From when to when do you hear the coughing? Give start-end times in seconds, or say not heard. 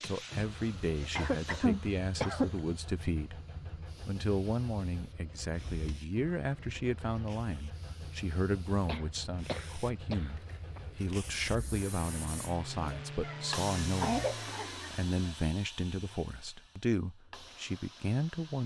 1.1-2.6, 8.8-10.8, 13.2-14.9.